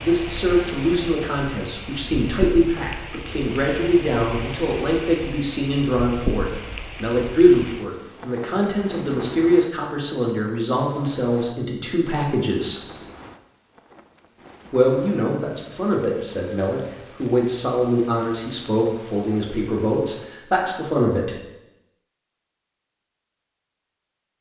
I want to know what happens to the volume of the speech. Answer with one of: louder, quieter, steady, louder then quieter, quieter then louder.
steady.